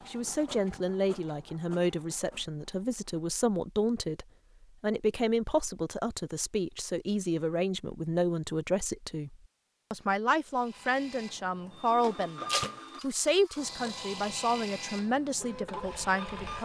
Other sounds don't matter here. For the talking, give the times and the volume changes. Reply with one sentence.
The talking can be heard from 0.1 to 16.5 s, at a steady volume.